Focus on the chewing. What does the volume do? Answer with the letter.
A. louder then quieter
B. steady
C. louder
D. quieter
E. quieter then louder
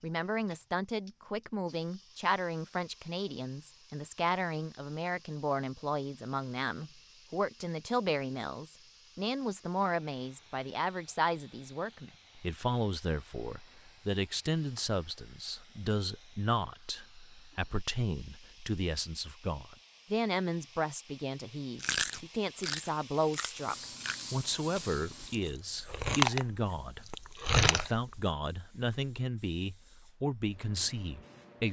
E.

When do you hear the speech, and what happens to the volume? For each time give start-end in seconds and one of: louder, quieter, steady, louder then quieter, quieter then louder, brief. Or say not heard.
0.0-31.6 steady.